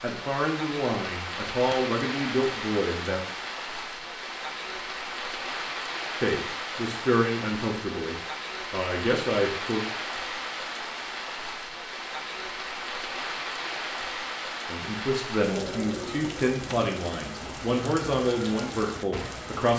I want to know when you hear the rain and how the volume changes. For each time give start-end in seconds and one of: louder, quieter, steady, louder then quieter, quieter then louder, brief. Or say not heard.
0.0-19.7 steady.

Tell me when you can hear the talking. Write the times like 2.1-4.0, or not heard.
0.0-3.2, 6.2-9.8, 14.7-19.7.